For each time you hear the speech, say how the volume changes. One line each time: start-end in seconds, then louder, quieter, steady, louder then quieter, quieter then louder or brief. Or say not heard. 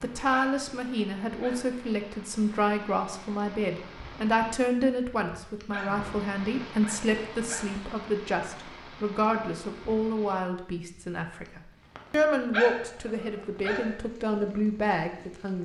0.0-15.5 steady.